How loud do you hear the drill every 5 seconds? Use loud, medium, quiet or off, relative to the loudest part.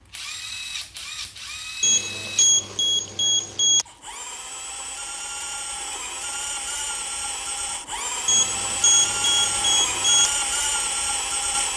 medium, loud, loud.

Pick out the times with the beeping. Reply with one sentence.
The beeping can be heard from 1.8 to 3.9 s and from 8.2 to 10.3 s.